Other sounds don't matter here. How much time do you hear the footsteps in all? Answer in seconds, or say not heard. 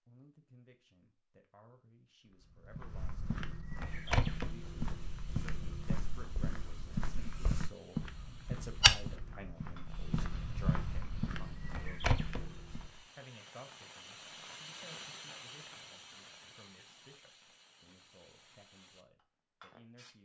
11 s.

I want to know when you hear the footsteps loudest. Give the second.
9 s.